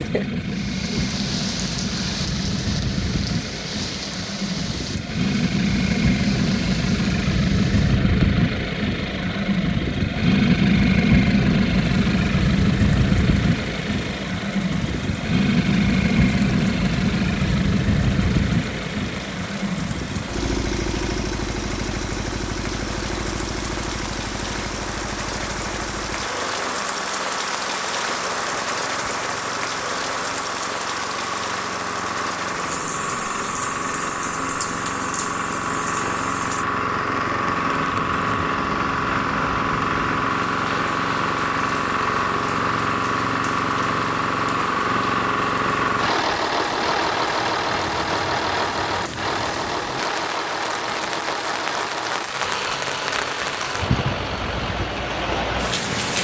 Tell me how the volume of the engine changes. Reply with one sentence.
The loudness of the engine goes down, then up.